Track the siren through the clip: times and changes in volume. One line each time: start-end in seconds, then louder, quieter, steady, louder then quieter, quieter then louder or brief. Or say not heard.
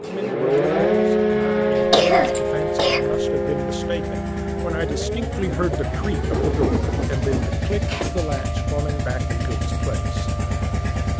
0.0-11.1 quieter.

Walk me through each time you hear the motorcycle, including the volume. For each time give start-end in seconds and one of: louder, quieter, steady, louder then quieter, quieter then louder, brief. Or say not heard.
0.0-11.1 louder.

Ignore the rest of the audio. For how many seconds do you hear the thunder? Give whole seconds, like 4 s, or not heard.
2 s.